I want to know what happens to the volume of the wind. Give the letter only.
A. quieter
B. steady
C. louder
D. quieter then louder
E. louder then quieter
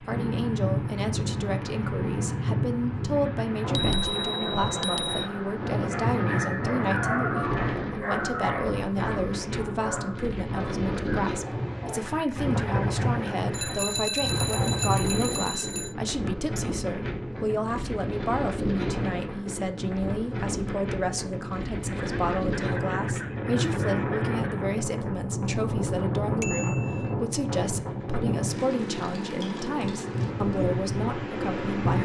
B.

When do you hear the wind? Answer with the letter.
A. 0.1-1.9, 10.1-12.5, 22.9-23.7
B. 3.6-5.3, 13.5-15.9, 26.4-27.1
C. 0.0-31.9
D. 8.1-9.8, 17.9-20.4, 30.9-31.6
C.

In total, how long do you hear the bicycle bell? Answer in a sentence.
The bicycle bell can be heard for 5 seconds in total.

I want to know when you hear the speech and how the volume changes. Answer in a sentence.
You can hear the speech from 0.0 to 31.9 s, at a steady volume.